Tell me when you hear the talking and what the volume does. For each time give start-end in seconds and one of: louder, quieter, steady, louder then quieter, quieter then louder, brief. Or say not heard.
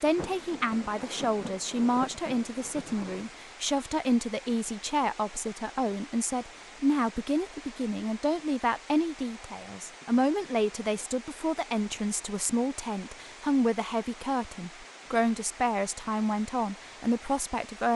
0.0-17.9 steady.